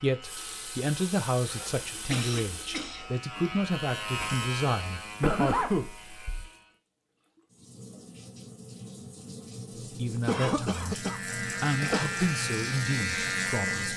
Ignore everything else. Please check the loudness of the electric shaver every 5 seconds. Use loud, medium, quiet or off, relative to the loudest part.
medium, quiet, loud.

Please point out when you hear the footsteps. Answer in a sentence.
The footsteps can't be heard in this clip.